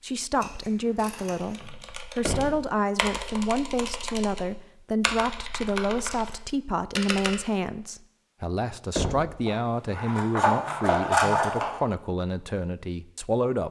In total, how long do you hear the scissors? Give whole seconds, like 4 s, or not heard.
4 s.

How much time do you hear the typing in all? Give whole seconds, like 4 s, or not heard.
6 s.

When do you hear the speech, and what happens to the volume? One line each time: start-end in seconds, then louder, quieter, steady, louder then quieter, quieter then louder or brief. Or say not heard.
0.0-13.6 steady.